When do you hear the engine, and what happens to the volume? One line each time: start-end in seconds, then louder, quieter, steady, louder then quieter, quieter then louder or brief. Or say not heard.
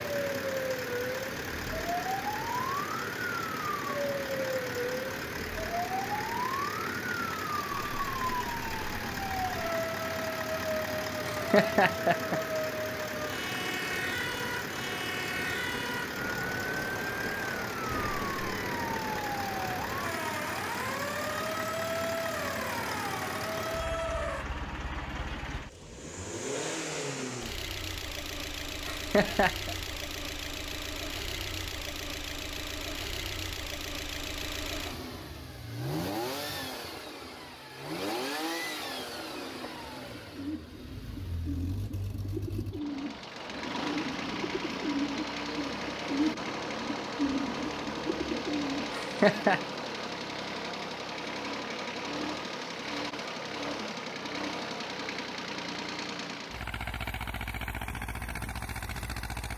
0.0-59.5 steady.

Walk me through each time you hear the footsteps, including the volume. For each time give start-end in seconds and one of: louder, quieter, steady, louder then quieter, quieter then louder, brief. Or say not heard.
not heard.